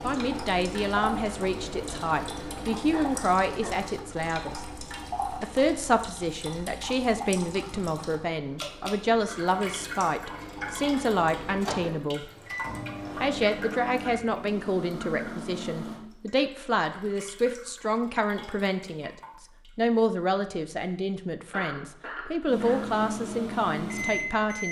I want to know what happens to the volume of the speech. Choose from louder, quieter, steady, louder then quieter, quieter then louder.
steady.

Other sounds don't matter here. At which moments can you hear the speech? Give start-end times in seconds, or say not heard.
0.0-4.7, 5.4-12.2, 13.2-19.1, 19.8-24.6.